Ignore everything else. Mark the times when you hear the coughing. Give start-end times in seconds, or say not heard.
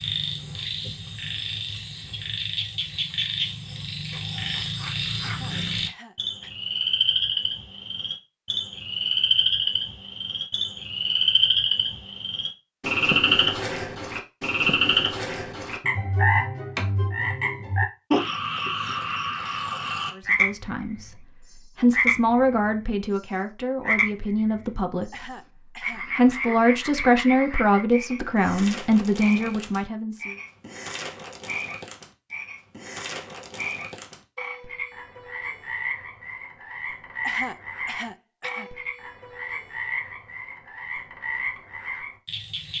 5.2-6.5, 25.1-26.6, 37.2-38.7.